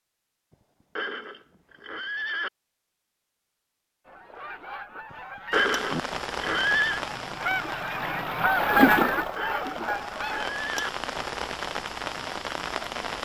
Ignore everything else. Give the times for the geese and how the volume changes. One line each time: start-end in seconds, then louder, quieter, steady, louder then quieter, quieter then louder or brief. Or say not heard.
4.0-10.6 louder then quieter.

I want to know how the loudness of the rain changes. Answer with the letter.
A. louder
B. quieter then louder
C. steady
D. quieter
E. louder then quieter
B.